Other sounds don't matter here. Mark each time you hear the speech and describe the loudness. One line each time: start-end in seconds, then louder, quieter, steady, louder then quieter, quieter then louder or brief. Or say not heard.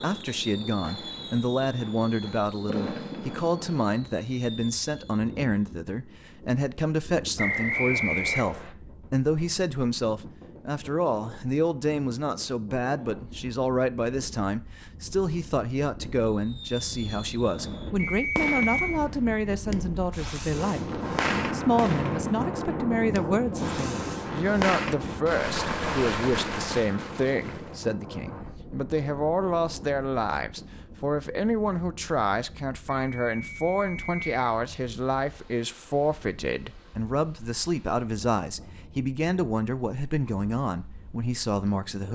0.0-42.1 steady.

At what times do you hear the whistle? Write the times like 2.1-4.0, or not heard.
7.3-8.7, 17.9-19.0, 33.0-34.4.